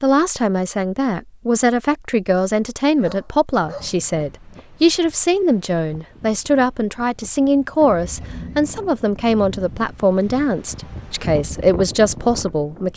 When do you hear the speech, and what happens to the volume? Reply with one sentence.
The speech can be heard from 0.0 to 12.9 s, at a steady volume.